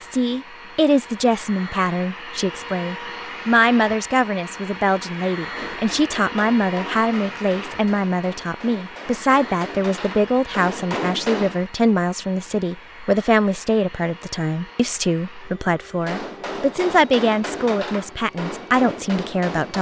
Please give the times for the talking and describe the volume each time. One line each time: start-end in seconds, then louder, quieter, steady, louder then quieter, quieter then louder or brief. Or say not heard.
0.0-19.7 steady.